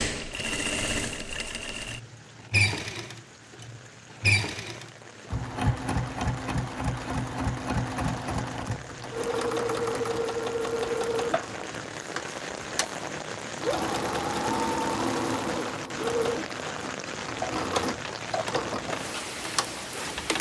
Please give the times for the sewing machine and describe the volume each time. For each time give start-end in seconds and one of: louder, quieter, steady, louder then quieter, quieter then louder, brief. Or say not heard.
0.0-20.3 steady.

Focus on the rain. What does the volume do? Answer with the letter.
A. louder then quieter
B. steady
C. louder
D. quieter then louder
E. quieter
C.